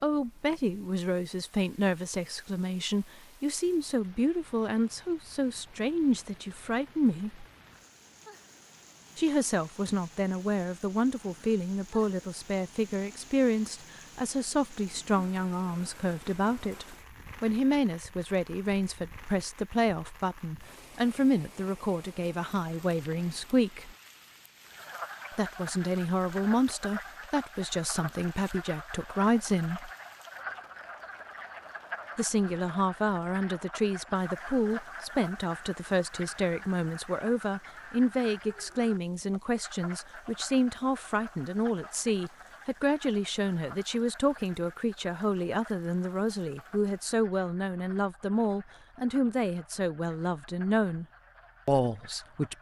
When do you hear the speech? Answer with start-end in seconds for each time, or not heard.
0.0-7.5, 9.2-23.9, 25.3-29.9, 32.1-51.0, 51.6-52.5.